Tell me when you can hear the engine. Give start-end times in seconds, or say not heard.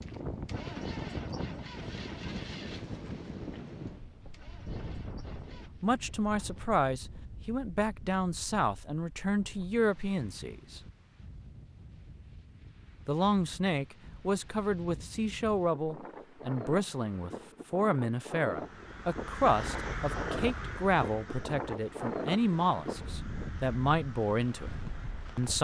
0.0-5.7.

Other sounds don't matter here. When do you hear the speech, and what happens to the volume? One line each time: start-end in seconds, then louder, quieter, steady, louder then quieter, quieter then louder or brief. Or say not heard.
5.8-10.8 steady
13.1-25.5 steady.